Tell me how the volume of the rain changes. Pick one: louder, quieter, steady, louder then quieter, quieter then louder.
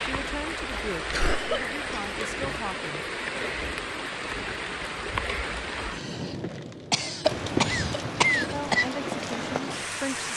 steady.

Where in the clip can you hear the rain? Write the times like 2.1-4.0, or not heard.
0.0-10.3.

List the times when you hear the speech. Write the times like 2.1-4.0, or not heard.
0.0-3.0, 8.5-10.3.